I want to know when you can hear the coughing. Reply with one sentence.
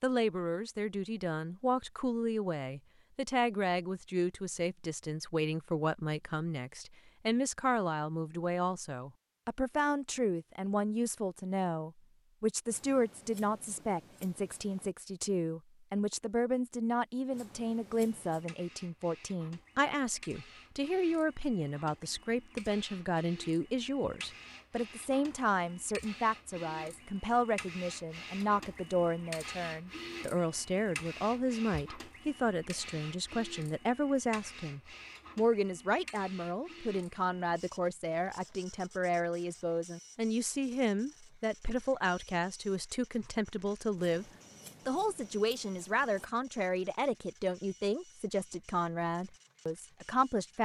The coughing can't be heard in this clip.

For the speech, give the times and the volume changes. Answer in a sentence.
The speech can be heard from 0.0 to 50.6 s, at a steady volume.